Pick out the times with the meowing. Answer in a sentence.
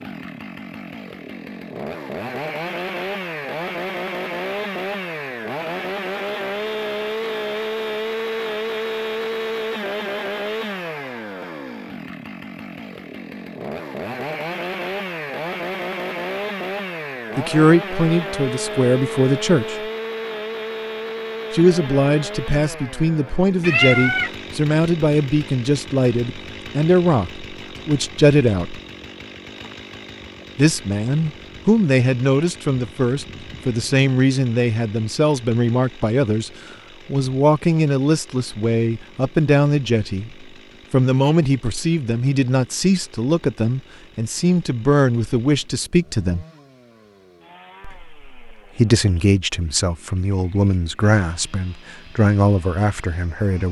You can hear the meowing from 23.6 to 24.3 s.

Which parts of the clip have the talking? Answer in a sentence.
You can hear the talking from 17.4 to 19.9 s, from 21.5 to 28.8 s, from 30.6 to 46.5 s and from 47.8 to 53.6 s.